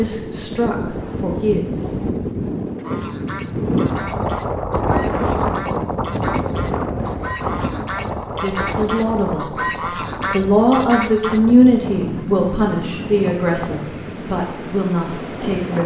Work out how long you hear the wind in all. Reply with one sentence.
The wind can be heard for 16 seconds in total.